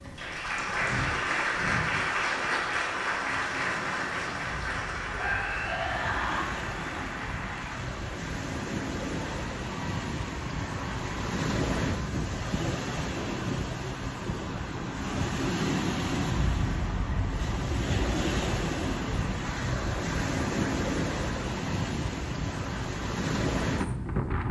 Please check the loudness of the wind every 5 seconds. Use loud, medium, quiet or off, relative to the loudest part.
quiet, medium, loud, loud, loud.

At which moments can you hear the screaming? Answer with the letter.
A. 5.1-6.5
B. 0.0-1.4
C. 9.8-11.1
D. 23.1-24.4
A.